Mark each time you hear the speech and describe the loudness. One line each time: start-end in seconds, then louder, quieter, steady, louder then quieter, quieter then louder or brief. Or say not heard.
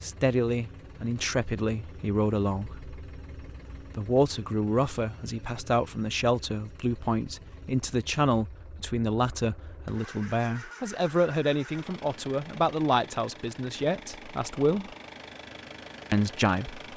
0.0-2.9 brief
4.0-14.9 steady
16.1-16.8 brief.